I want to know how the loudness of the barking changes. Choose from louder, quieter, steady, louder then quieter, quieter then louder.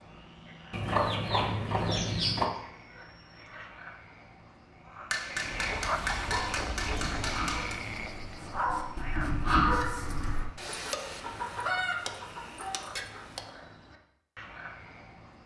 louder.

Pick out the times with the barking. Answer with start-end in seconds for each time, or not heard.
6.3-10.4.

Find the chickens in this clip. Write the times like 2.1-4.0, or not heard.
0.7-2.5, 5.5-7.2, 10.6-13.4.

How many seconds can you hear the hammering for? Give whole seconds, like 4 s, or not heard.
3 s.